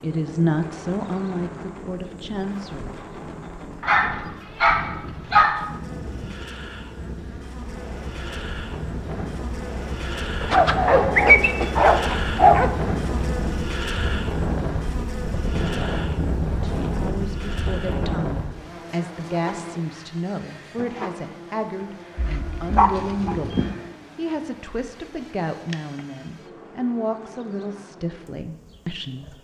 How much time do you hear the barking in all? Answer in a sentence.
The barking can be heard for 6 seconds in total.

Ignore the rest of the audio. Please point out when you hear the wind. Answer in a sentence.
You can hear the wind from 0.0 to 18.5 s.